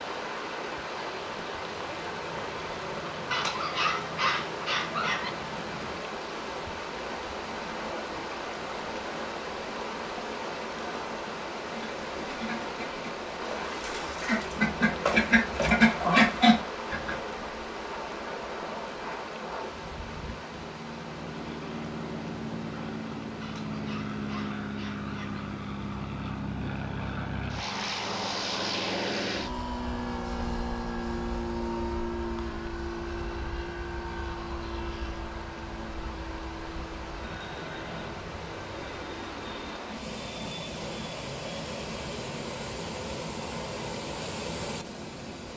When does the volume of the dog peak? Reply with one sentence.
The loudest moment of the dog is at 4 seconds.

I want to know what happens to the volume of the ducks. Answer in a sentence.
The volume of the ducks goes up.